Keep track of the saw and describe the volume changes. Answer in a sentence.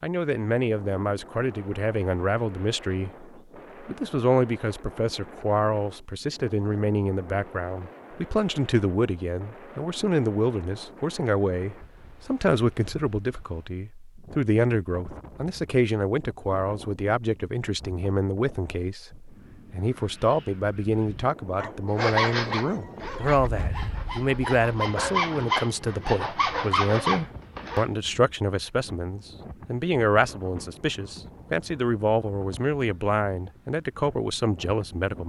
The loudness of the saw goes down, then up.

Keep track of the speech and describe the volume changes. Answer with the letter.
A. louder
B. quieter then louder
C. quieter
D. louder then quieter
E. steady
E.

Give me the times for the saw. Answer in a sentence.
The saw can be heard from 21.9 to 27.9 s.